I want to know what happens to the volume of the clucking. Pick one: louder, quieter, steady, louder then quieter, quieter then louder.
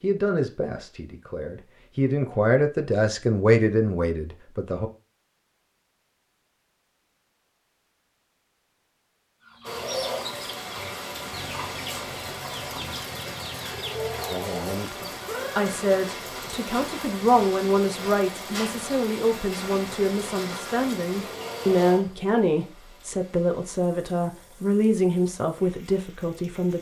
steady.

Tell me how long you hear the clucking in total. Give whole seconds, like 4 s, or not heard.
6 s.